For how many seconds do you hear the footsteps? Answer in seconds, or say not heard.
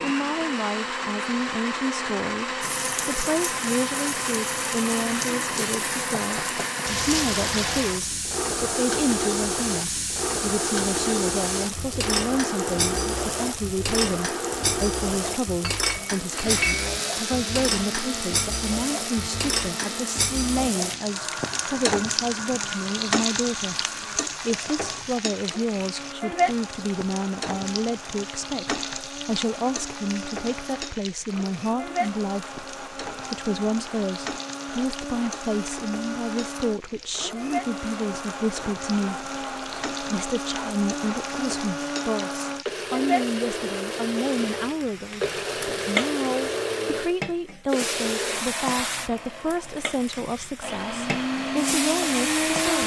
not heard.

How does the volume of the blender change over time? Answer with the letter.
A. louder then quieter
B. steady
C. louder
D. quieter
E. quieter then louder
E.